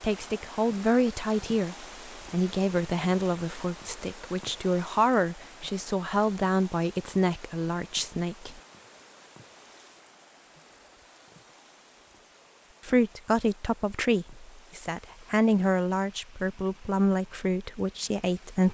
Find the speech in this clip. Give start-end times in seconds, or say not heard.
0.0-8.6, 12.8-18.6.